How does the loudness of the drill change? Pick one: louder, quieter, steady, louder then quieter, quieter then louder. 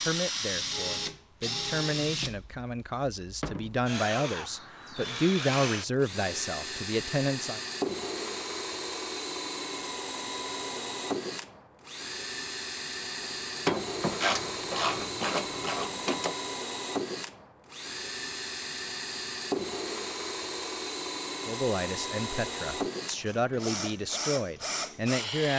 steady.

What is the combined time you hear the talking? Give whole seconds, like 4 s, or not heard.
12 s.